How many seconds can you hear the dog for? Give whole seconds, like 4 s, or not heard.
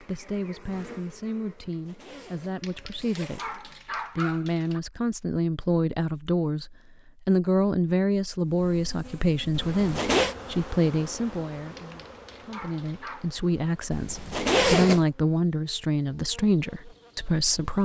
4 s.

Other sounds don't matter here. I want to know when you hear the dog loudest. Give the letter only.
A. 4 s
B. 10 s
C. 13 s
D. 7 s
A.